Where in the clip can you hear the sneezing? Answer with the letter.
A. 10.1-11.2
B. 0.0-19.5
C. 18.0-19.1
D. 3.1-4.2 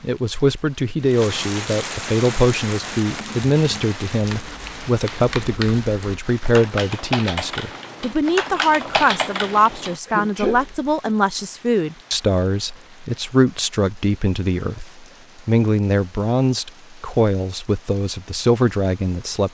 A.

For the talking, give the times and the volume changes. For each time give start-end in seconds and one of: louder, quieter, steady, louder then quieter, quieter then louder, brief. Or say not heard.
0.0-19.5 steady.